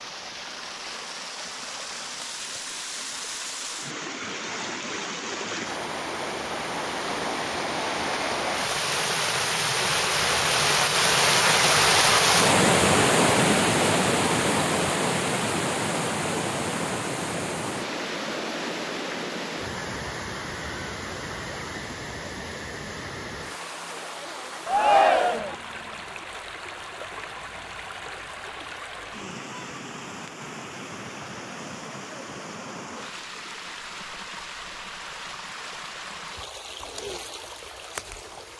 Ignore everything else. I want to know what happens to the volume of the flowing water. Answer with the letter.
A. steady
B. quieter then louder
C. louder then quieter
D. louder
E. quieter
C.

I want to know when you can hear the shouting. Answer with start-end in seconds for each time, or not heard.
24.6-25.6.